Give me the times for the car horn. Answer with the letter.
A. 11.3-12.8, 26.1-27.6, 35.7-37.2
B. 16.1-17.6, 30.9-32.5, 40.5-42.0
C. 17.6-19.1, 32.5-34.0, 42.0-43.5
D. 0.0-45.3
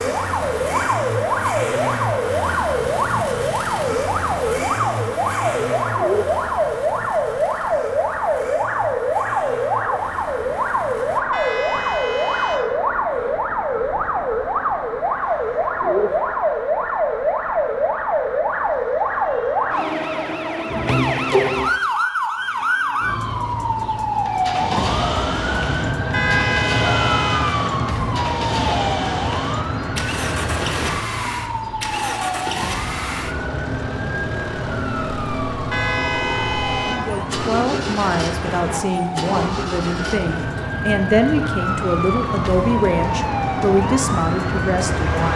A.